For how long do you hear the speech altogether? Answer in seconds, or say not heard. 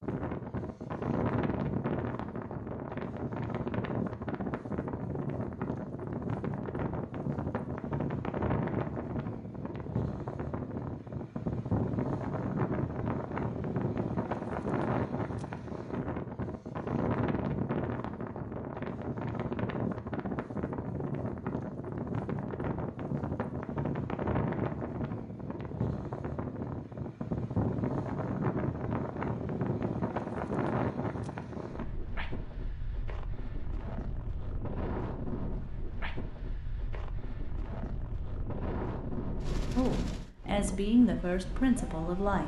3 s.